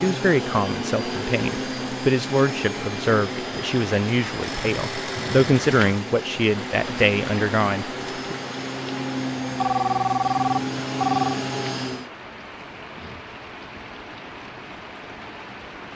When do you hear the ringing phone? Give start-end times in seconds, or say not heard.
4.4-5.5, 9.6-11.4.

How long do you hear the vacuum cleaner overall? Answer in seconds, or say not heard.
12 s.